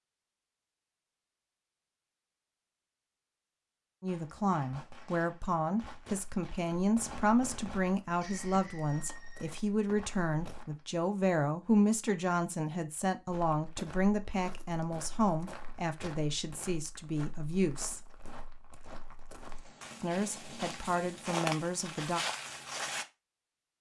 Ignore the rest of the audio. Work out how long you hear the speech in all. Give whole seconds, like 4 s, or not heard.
16 s.